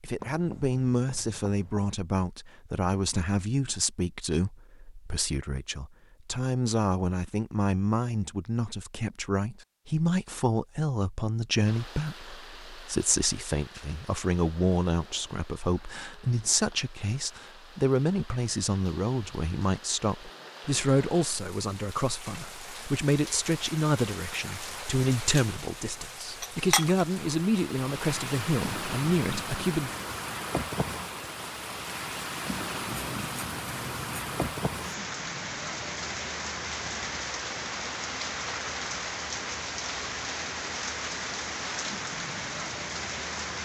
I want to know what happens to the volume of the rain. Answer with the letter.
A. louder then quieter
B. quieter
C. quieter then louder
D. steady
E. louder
E.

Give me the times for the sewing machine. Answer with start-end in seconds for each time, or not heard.
not heard.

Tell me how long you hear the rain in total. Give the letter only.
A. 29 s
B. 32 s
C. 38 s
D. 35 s
B.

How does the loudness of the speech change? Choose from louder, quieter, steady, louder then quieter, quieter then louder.
steady.